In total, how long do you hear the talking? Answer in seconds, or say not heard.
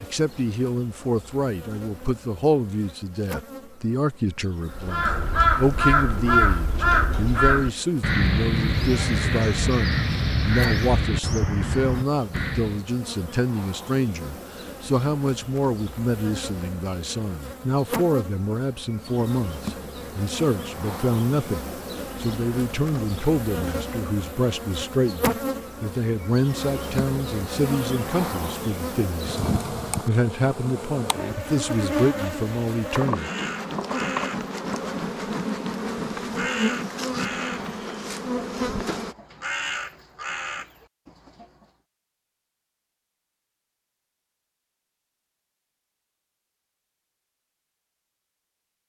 33 s.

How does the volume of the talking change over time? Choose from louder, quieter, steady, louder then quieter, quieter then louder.
steady.